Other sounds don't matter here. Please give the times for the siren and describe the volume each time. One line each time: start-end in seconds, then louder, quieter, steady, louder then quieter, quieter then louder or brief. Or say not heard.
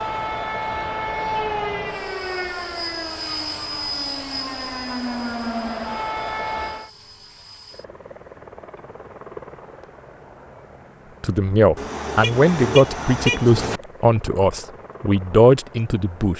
0.0-6.9 quieter then louder.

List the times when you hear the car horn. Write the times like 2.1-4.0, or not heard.
11.8-13.8.